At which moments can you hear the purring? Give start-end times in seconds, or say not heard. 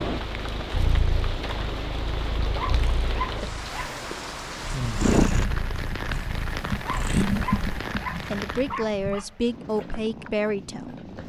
0.2-11.2.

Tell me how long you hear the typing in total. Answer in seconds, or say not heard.
not heard.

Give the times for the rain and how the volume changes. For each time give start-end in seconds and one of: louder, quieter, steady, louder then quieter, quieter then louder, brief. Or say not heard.
0.0-8.8 steady.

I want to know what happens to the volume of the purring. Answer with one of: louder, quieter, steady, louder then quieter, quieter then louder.
louder then quieter.